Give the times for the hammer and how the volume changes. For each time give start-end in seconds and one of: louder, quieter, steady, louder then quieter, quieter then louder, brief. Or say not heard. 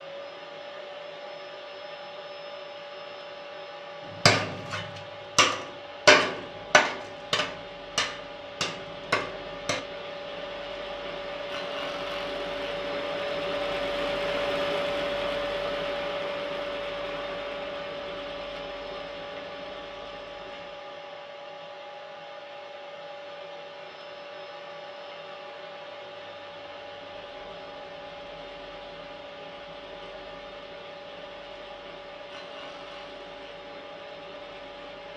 4.2-9.8 louder then quieter.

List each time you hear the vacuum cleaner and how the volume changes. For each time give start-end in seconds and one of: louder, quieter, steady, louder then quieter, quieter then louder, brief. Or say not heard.
0.0-35.1 louder then quieter.